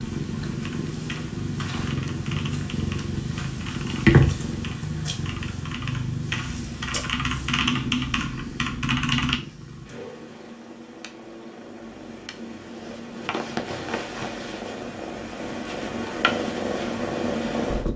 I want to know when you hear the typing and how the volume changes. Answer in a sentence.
The typing can be heard from 0.6 to 9.4 s, getting louder.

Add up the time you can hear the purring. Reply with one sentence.
You can hear the purring for 18 seconds altogether.